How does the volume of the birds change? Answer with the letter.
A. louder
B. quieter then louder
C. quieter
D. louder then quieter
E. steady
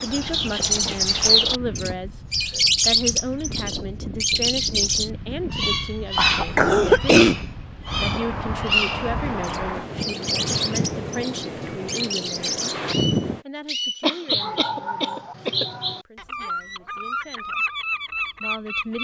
C.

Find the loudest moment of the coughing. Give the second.
7 s.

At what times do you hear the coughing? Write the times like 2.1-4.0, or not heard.
6.2-7.4, 14.0-15.7.